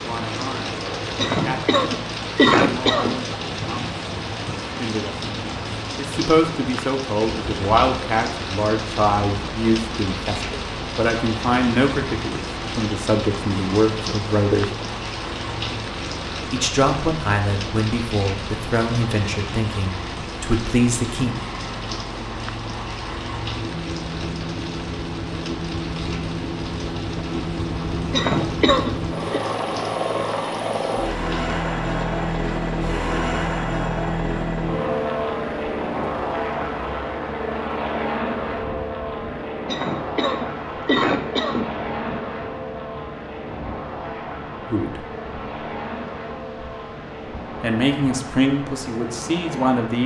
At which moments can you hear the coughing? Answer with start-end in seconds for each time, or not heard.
1.1-3.1, 28.1-29.4, 39.6-41.8.